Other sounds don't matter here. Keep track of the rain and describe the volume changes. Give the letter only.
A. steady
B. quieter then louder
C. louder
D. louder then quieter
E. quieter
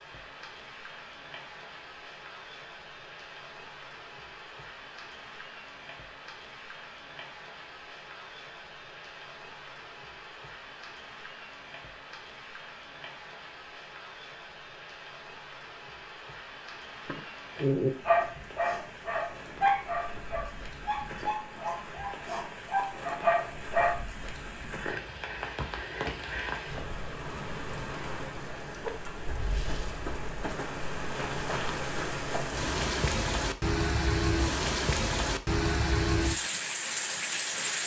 C.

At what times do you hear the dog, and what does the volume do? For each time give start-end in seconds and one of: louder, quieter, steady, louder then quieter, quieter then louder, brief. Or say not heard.
17.1-23.9 quieter then louder.